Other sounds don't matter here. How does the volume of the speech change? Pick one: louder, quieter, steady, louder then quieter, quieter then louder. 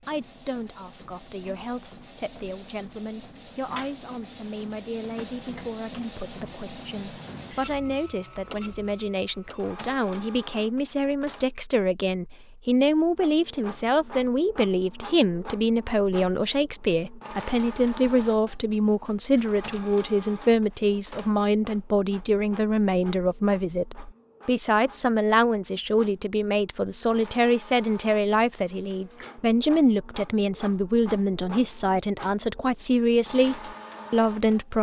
louder.